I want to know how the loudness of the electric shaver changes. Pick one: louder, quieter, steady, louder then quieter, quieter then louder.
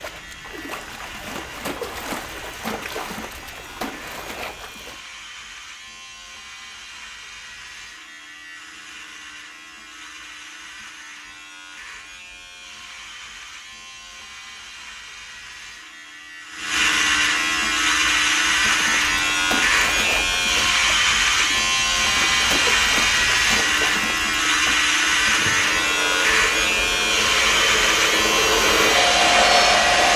louder.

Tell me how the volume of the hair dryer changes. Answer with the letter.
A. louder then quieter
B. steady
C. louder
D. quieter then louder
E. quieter
C.